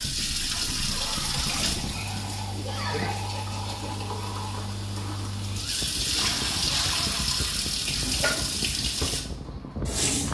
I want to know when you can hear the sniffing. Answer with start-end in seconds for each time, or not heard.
0.8-3.2, 5.5-7.3.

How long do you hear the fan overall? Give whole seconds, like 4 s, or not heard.
10 s.